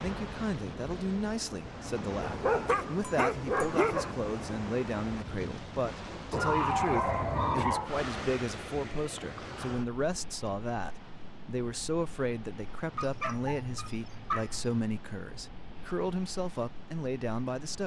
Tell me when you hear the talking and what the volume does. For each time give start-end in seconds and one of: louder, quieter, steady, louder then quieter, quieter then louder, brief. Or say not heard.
0.0-17.8 steady.